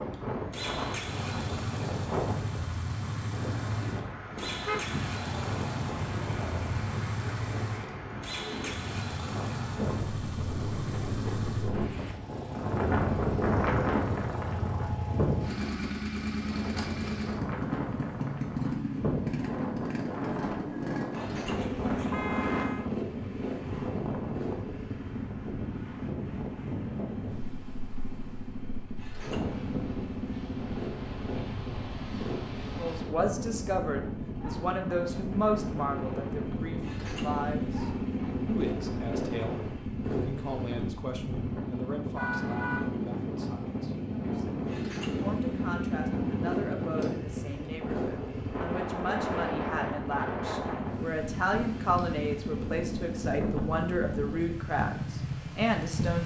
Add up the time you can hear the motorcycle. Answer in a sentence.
The motorcycle can be heard for 56 seconds in total.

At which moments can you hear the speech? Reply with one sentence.
You can hear the speech from 32.8 to 37.9 s and from 38.5 to 56.2 s.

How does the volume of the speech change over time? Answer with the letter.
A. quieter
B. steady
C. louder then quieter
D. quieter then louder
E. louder
D.